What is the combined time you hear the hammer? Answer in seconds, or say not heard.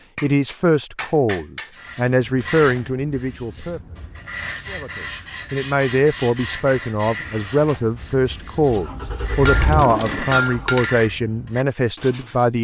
3 s.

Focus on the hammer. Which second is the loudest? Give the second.
10 s.